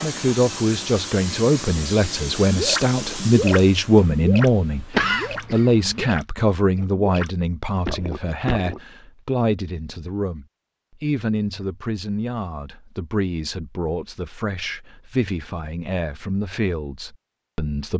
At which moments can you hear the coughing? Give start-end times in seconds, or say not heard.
4.9-6.1.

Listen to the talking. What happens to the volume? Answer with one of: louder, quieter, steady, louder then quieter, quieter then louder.
quieter.